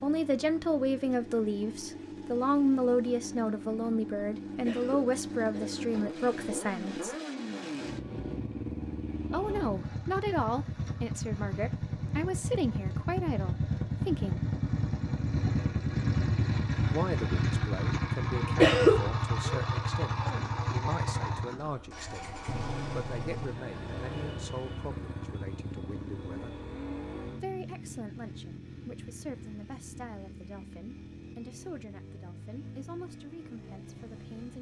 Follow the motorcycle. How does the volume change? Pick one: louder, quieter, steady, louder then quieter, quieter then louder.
louder then quieter.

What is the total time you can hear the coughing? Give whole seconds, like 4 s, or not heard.
2 s.